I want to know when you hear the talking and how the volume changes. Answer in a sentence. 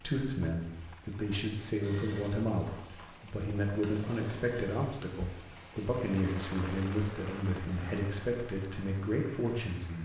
You can hear the talking from 0.0 to 10.0 s, at a steady volume.